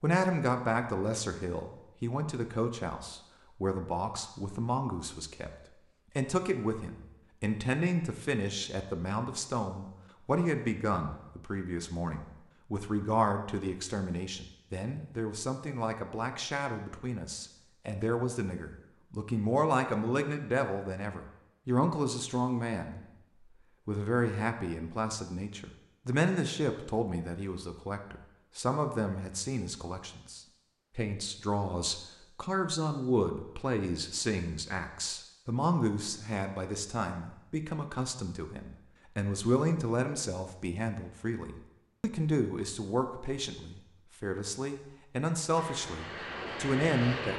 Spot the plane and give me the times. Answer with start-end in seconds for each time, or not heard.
45.5-47.3.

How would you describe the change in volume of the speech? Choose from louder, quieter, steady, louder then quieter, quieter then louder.
steady.